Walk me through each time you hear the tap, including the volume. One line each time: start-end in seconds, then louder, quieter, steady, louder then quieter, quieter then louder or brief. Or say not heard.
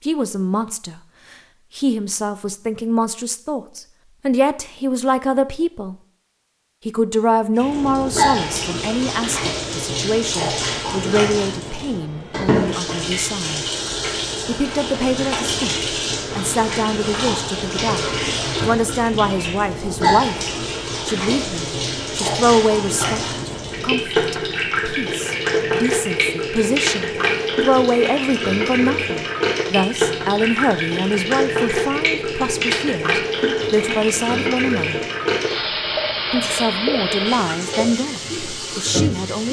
7.5-39.4 steady.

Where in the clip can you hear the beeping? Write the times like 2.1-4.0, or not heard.
not heard.